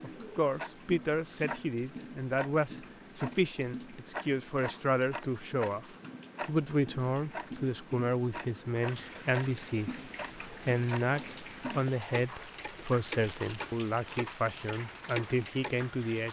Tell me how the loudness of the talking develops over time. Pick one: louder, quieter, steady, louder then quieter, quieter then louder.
steady.